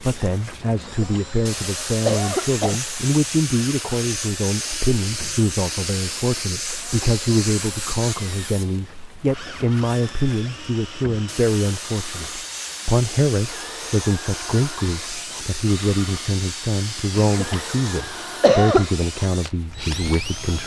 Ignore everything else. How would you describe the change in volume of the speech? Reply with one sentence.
The volume of the speech stays about the same.